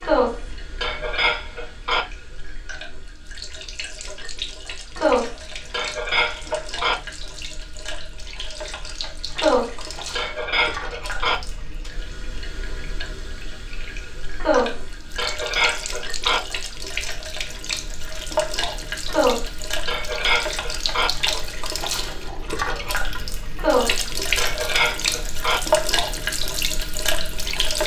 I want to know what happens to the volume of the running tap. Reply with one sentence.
The loudness of the running tap goes up.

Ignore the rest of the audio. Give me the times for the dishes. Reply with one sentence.
The dishes can be heard from 0.0 to 2.0 s, from 5.0 to 7.0 s, from 9.3 to 11.4 s, from 14.4 to 16.4 s, from 19.1 to 21.1 s and from 23.6 to 25.6 s.